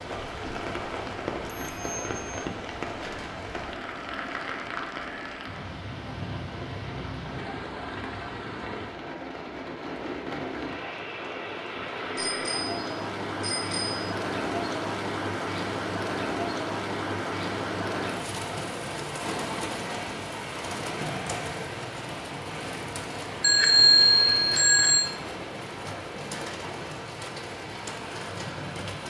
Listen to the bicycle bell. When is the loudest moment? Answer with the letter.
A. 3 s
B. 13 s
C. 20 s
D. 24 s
D.